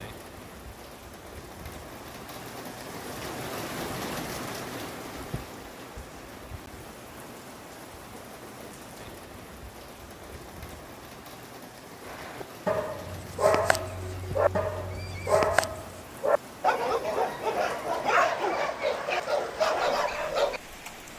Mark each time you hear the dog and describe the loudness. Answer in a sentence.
You can hear the dog from 12.1 to 20.6 s, at a steady volume.